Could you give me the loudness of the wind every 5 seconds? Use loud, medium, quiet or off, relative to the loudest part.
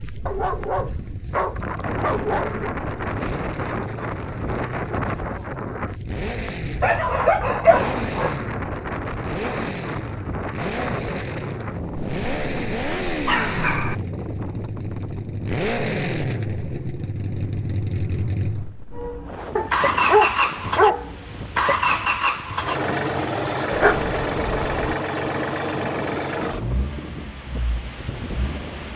loud, loud, loud, medium, medium, medium.